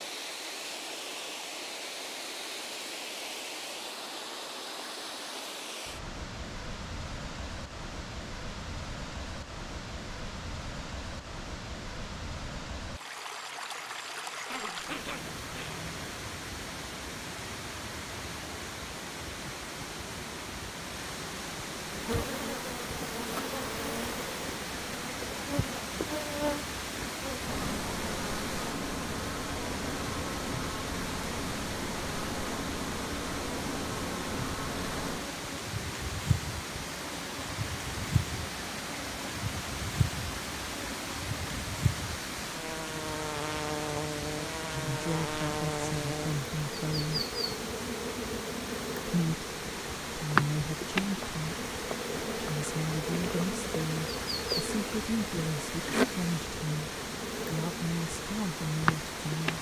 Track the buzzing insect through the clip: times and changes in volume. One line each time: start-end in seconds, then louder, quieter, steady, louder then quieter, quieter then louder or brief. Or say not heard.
21.9-59.5 steady.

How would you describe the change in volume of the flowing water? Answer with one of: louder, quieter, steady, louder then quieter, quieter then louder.
steady.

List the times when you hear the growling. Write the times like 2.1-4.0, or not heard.
14.4-16.1.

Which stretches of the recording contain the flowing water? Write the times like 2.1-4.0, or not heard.
0.0-59.5.